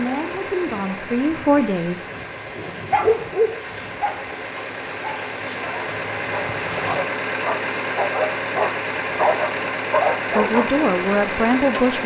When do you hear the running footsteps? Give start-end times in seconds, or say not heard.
not heard.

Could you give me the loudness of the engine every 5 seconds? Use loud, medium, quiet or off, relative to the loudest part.
medium, loud, loud.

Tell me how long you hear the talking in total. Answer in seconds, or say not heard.
4 s.